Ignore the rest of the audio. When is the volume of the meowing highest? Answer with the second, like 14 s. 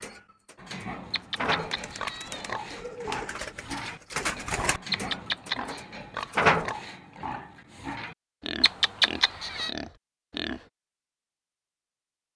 9 s.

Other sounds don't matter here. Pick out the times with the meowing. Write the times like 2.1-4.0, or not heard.
1.1-2.6, 4.9-5.8, 8.6-9.7.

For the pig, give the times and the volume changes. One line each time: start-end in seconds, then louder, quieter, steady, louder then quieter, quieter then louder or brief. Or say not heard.
0.6-10.7 steady.